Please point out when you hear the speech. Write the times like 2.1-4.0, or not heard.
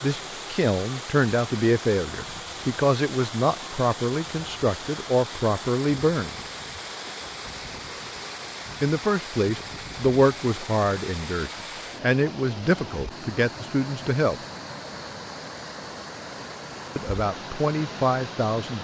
0.0-6.5, 8.8-14.4, 16.9-18.7.